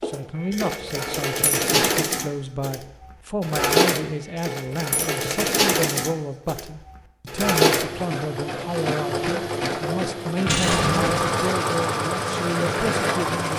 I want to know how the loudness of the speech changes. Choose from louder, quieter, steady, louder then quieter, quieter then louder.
steady.